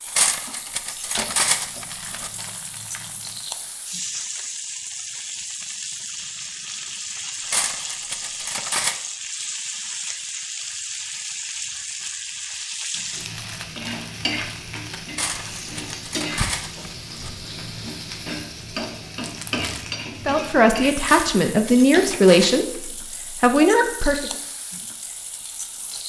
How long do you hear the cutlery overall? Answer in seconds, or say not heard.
8 s.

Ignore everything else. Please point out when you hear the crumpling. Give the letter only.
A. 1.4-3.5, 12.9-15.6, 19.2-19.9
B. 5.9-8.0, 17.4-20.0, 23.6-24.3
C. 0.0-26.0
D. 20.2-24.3
A.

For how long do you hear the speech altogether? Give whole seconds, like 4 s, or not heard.
4 s.